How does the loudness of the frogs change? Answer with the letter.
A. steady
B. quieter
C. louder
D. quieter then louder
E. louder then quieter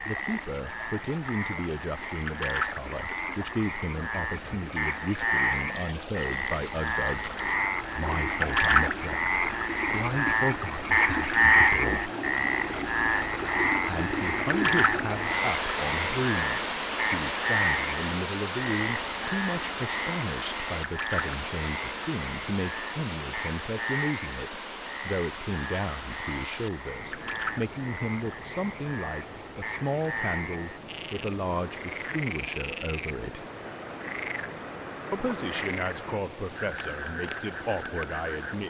E.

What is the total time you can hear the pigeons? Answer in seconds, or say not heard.
not heard.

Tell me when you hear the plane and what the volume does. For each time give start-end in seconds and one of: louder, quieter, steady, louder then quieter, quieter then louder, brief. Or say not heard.
not heard.